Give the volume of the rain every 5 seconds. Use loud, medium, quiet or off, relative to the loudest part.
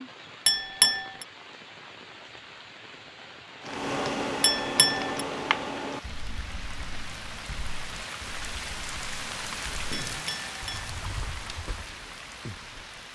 medium, loud, loud.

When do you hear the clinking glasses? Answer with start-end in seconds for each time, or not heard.
0.5-1.2, 4.4-5.2, 10.1-10.9.